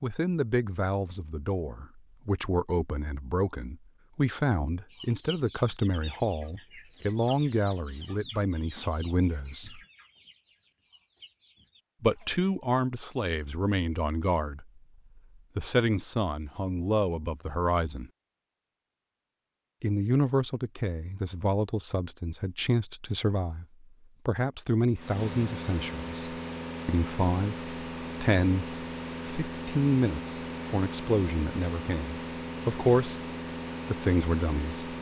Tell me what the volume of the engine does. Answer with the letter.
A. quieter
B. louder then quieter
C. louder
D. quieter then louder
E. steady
E.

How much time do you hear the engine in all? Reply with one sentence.
You can hear the engine for 10 seconds altogether.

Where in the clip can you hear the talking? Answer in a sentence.
You can hear the talking from 0.0 to 9.8 s, from 12.0 to 18.1 s, from 19.8 to 33.2 s and from 33.9 to 34.9 s.